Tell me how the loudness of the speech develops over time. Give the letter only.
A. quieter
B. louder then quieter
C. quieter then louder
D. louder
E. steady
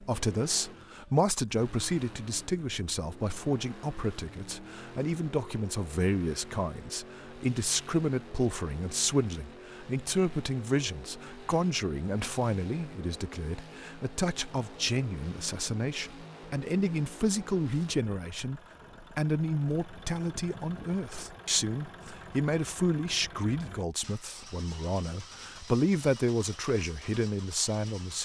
E.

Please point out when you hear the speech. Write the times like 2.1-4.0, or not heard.
0.0-28.1.